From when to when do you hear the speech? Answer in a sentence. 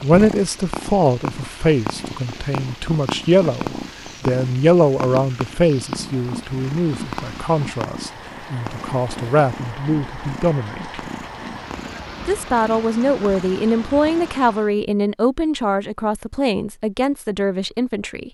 The speech can be heard from 0.0 to 11.0 s and from 12.2 to 18.3 s.